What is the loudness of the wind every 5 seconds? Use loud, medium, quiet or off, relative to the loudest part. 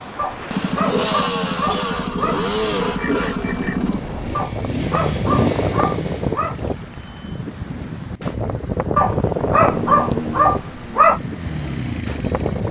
medium, loud, loud.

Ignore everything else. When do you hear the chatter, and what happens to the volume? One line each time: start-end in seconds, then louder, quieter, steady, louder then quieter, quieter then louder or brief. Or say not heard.
not heard.